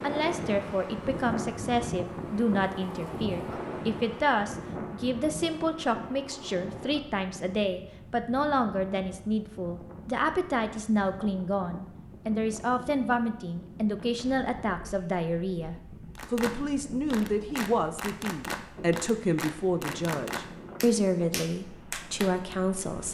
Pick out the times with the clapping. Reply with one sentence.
The clapping can be heard from 16.1 to 22.6 s.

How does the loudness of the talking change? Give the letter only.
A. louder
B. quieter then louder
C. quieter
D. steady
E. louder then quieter
D.